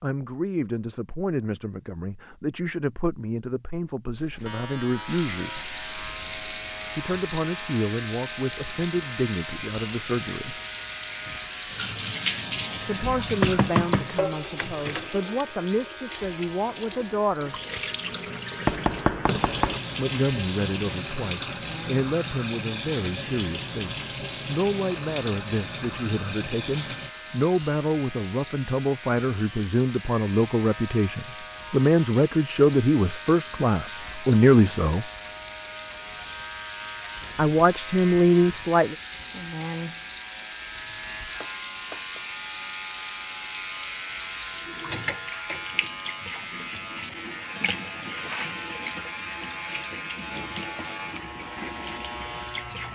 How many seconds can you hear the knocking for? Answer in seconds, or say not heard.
4 s.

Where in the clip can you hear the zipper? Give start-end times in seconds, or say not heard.
not heard.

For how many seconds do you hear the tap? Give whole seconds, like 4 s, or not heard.
48 s.